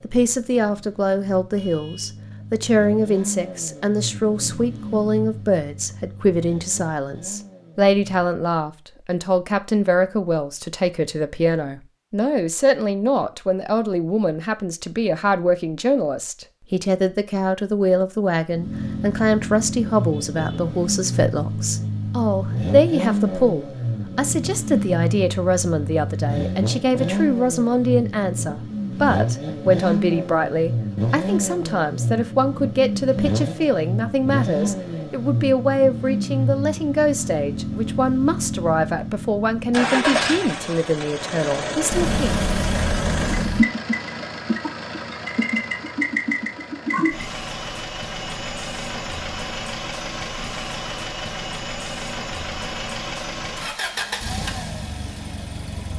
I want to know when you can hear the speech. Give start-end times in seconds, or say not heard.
0.0-42.2.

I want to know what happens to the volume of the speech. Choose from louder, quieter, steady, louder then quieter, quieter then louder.
steady.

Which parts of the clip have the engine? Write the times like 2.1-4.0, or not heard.
0.0-8.2, 18.5-55.9.